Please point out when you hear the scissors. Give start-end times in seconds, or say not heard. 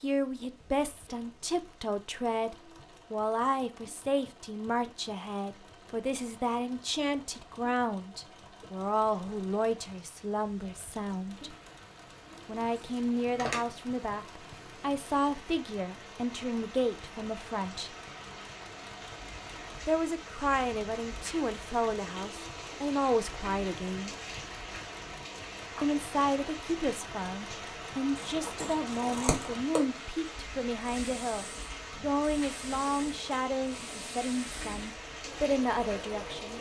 12.8-13.7, 28.1-29.8.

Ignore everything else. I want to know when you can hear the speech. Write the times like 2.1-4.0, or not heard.
0.0-11.6, 12.4-17.9, 19.9-24.1, 25.8-36.5.